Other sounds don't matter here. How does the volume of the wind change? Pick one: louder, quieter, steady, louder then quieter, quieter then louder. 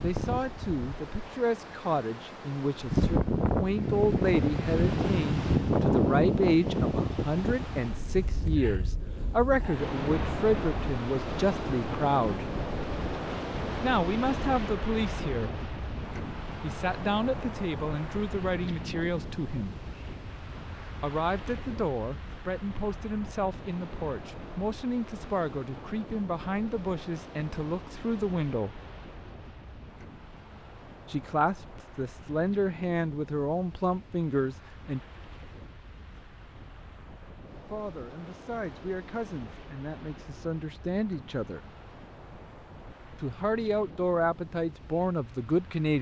quieter.